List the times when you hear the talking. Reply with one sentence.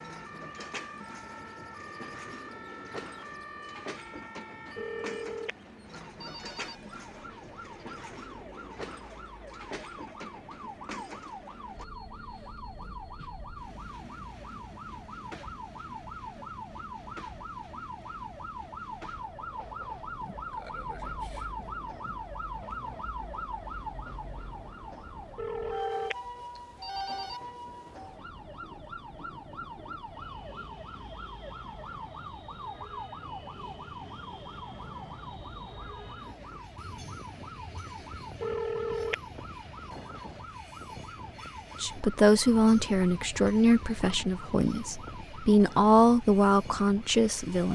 The talking can be heard from 41.8 to 47.7 s.